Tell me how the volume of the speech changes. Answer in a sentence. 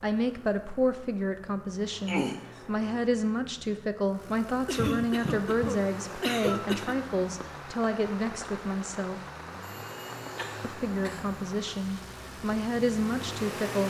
The volume of the speech stays about the same.